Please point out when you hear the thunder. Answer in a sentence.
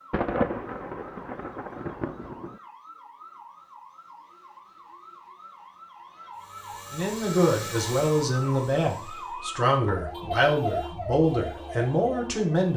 The thunder can be heard from 0.1 to 2.6 s.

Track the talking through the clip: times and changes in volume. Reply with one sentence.
You can hear the talking from 6.9 to 12.7 s, at a steady volume.